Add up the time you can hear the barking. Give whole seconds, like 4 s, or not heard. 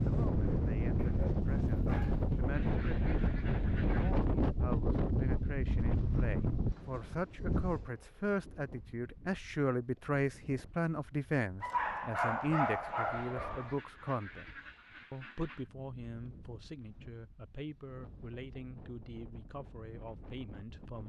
4 s.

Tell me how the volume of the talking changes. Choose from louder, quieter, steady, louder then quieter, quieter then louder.
louder then quieter.